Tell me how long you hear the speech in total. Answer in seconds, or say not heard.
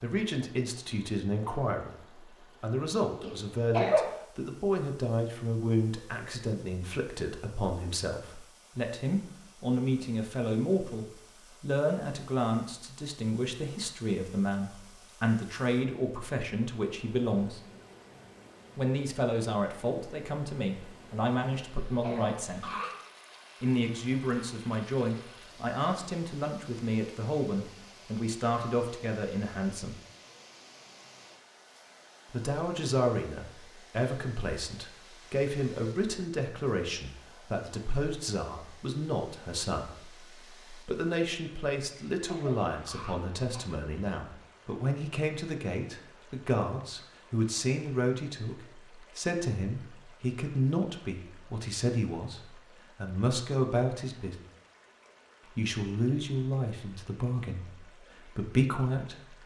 54 s.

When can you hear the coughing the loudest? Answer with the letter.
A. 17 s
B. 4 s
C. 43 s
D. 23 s
B.